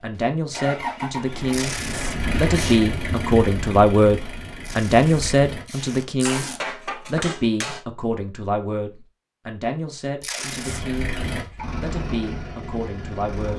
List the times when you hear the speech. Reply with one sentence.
The speech can be heard from 0.0 to 1.8 s, from 2.4 to 6.5 s, from 7.0 to 11.2 s and from 11.8 to 13.5 s.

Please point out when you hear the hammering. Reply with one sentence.
You can hear the hammering from 6.2 to 7.8 s.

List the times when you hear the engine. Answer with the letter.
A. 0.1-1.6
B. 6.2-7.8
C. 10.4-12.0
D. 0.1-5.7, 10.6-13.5
D.